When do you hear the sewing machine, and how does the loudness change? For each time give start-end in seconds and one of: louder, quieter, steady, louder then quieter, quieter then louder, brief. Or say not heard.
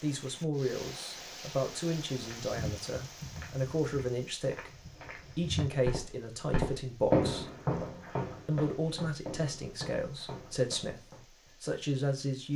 not heard.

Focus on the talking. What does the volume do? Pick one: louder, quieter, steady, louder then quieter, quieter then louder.
steady.